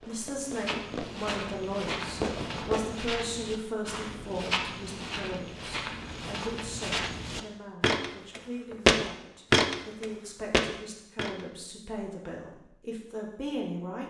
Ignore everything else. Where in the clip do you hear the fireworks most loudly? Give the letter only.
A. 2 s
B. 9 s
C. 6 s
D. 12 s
A.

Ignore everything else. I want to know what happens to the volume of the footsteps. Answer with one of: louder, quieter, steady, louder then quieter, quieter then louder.
louder.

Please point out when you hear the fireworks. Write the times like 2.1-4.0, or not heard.
0.0-3.0.